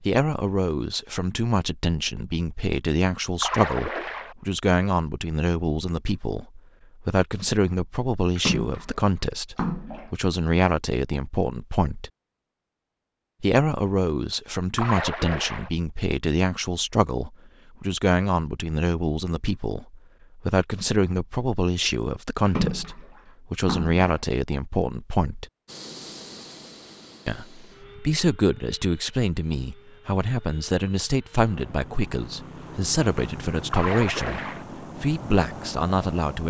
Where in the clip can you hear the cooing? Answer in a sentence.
The cooing can't be heard in this clip.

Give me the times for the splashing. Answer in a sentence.
The splashing can be heard from 3.4 to 4.3 s, from 8.3 to 10.1 s, from 14.8 to 15.7 s, from 22.4 to 24.1 s and from 33.7 to 34.6 s.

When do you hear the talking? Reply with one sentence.
The talking can be heard from 0.0 to 12.1 s, from 13.4 to 25.4 s and from 27.2 to 36.4 s.